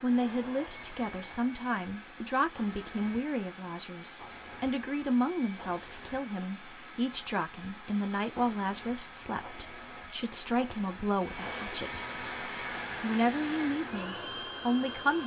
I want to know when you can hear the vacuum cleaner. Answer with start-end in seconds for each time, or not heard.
0.0-15.2.